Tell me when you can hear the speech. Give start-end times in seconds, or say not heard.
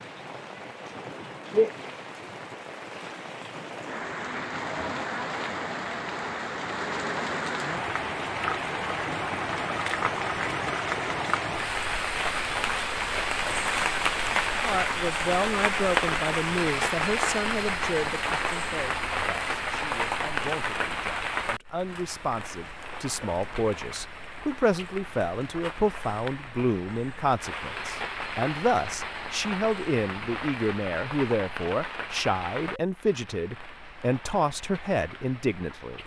14.6-36.0.